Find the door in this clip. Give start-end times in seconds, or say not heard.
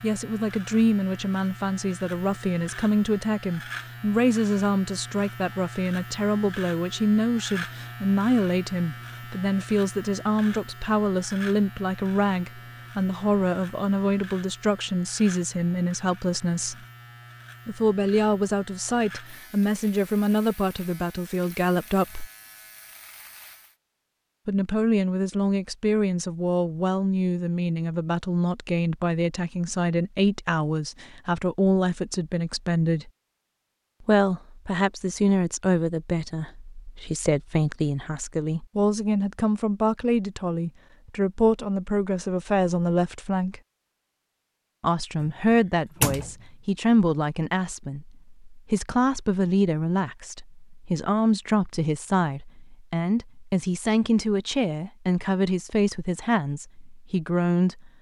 45.2-46.4.